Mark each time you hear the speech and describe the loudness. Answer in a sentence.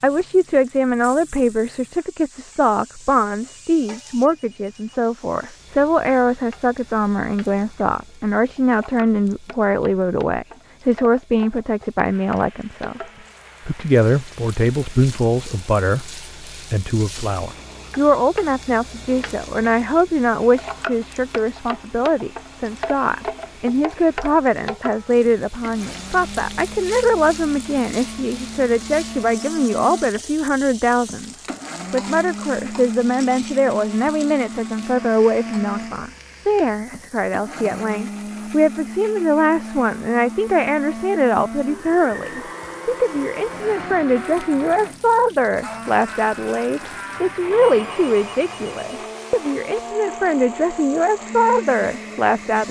The speech can be heard from 0.0 to 13.0 s, at a steady volume; and from 13.7 to 52.6 s, at a steady volume.